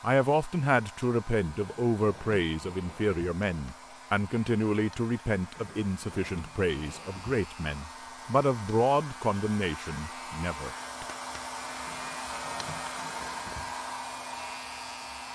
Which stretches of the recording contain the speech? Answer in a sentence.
The speech can be heard from 0.0 to 11.1 s.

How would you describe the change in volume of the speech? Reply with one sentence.
The volume of the speech stays about the same.